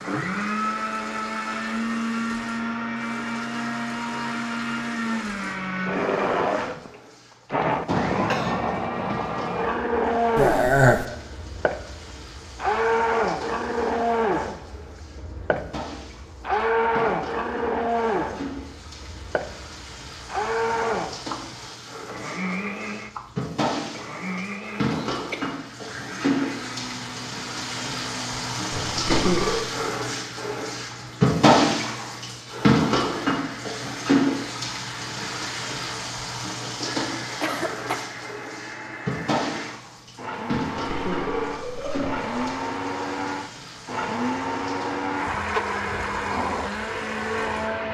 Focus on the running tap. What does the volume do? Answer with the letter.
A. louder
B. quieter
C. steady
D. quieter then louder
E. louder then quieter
E.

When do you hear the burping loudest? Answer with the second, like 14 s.
11 s.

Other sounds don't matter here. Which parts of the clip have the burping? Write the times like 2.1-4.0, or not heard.
10.3-11.1, 28.7-29.7, 40.8-42.5.